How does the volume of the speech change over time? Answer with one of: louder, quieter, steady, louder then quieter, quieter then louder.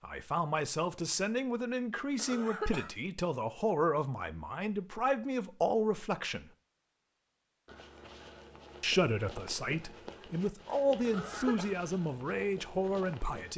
steady.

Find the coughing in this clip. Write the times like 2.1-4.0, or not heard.
2.1-2.9, 11.0-11.8.